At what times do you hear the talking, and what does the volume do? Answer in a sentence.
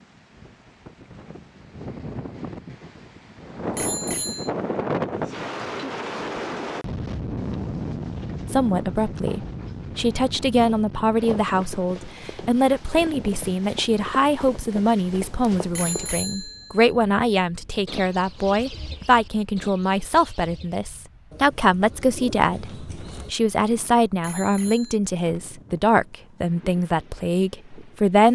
You can hear the talking from 8.5 to 28.3 s, at a steady volume.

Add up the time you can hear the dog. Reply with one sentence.
You can't hear the dog here.